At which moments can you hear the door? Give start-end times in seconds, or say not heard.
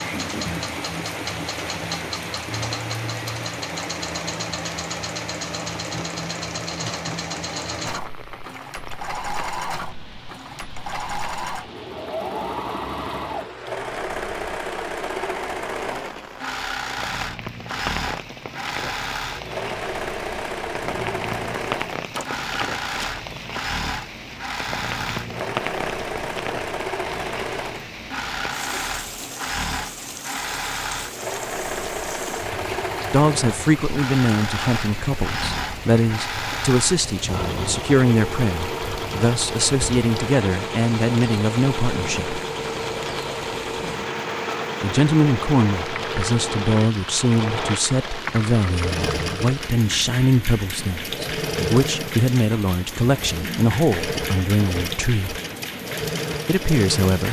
22.1-23.1.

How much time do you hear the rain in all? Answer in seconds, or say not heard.
57 s.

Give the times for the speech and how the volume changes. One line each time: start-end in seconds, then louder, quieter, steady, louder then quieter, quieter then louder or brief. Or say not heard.
33.1-42.4 steady
44.8-55.4 steady
56.5-57.2 brief.